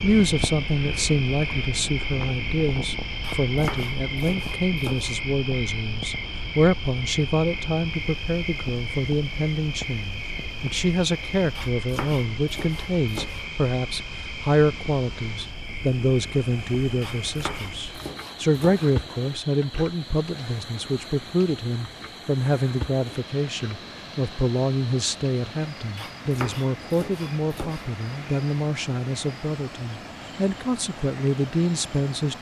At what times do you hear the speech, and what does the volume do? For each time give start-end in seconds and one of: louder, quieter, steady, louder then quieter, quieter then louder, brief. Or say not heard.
0.0-32.3 steady.